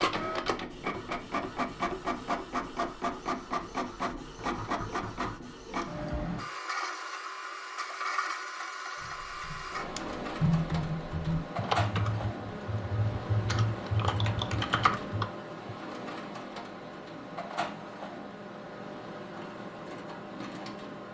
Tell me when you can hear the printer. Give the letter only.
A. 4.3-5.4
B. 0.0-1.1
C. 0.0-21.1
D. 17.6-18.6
C.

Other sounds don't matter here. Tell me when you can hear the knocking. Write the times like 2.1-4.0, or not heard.
4.3-5.4.